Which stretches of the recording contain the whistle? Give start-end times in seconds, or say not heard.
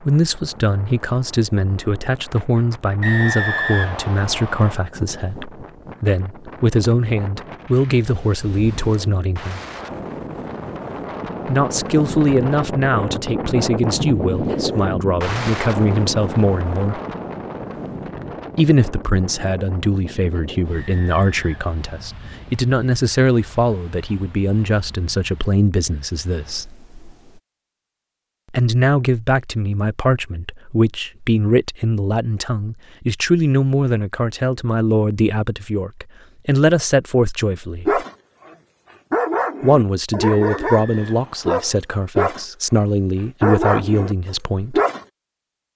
3.0-4.8, 20.7-22.1, 40.3-41.6.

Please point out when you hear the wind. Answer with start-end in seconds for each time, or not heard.
0.0-27.4.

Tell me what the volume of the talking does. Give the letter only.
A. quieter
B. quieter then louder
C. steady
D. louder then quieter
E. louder
C.